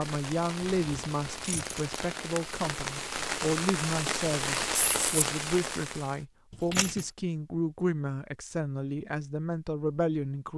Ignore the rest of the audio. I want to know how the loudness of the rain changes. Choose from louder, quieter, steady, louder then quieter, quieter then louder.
louder.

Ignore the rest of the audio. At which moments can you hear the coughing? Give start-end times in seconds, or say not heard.
not heard.